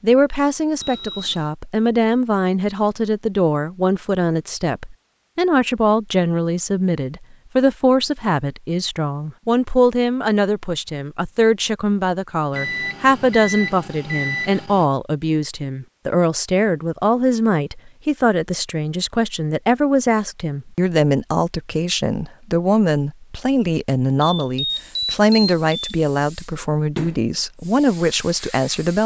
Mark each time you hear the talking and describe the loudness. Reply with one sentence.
You can hear the talking from 0.0 to 29.0 s, at a steady volume.